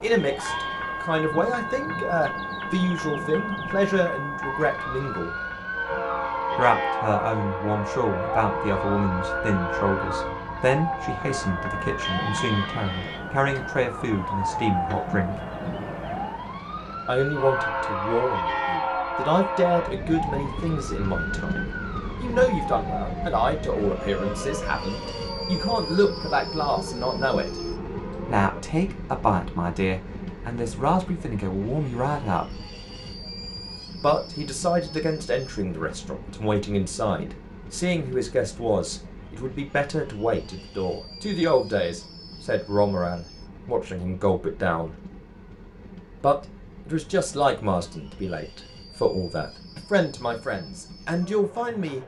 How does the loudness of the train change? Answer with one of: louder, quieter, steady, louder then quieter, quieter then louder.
quieter.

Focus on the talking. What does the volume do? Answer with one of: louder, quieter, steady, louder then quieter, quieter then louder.
steady.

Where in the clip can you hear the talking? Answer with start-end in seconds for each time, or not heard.
0.0-5.3, 6.5-15.4, 17.1-27.6, 28.2-32.6, 34.0-45.0, 46.2-52.0.